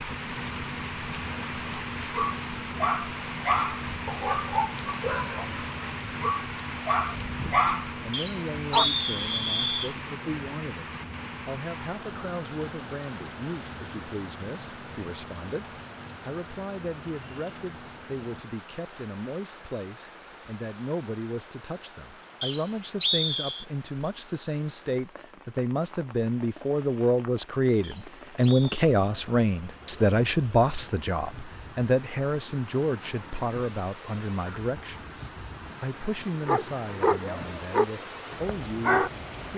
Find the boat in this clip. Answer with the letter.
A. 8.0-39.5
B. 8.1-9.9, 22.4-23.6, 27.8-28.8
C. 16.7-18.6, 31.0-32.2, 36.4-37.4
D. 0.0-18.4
D.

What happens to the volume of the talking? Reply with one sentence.
The loudness of the talking goes up, then down.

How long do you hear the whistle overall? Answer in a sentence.
You can hear the whistle for 4 seconds altogether.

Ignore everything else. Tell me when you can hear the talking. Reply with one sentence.
The talking can be heard from 8.0 to 39.5 s.